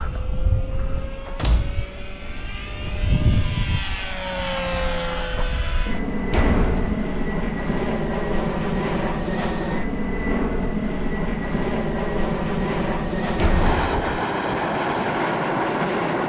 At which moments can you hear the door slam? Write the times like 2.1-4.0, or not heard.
1.4-1.9, 6.3-7.0, 13.3-13.9.